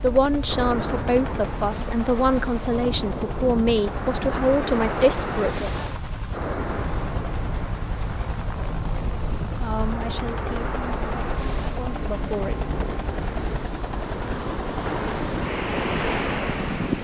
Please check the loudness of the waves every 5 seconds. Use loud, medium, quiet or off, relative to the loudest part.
medium, medium, medium, loud.